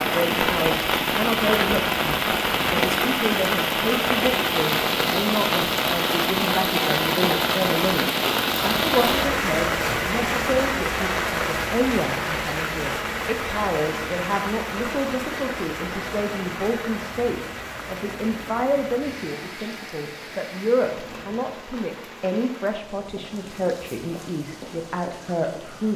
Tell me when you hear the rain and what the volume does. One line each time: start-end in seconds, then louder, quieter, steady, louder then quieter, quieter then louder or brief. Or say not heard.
0.0-25.9 quieter.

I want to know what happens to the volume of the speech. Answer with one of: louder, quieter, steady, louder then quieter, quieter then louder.
steady.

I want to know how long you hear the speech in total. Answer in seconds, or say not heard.
26 s.